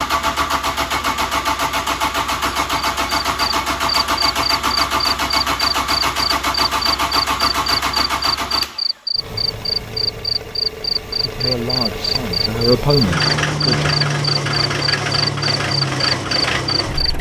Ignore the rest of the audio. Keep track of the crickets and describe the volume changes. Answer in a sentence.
The loudness of the crickets stays about the same.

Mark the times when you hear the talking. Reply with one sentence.
You can hear the talking from 11.1 to 13.9 s.